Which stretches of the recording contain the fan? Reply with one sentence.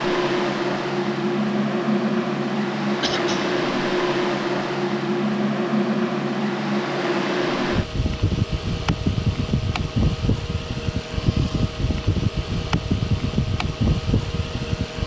The fan can be heard from 0.0 to 15.0 s.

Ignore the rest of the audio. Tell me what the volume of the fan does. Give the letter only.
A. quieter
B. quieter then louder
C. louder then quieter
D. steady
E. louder
D.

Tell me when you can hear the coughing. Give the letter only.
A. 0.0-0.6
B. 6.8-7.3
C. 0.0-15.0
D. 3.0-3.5
D.